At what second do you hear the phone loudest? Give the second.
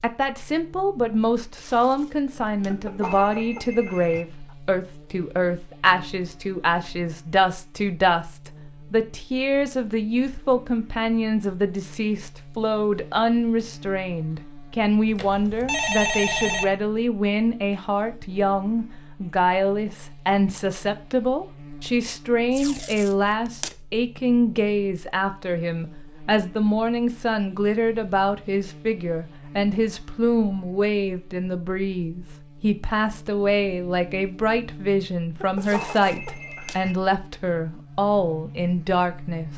16 s.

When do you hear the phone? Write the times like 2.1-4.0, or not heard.
2.6-4.2, 15.1-16.6, 35.4-37.0.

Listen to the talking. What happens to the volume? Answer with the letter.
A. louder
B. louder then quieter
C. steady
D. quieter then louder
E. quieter
C.